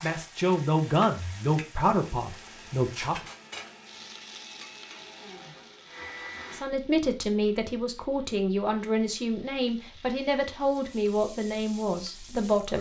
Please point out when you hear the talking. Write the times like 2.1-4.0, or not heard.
0.0-3.1, 6.5-12.7.